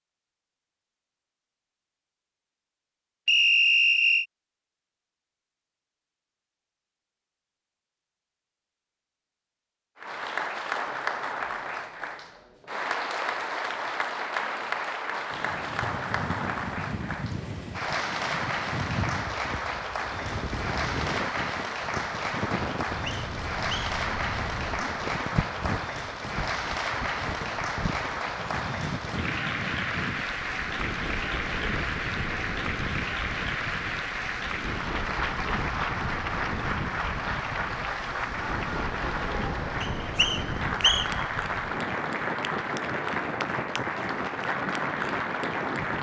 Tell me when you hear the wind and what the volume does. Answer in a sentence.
The wind can be heard from 15.3 to 45.9 s, at a steady volume.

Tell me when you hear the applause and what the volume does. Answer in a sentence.
The applause can be heard from 9.9 to 45.9 s, at a steady volume.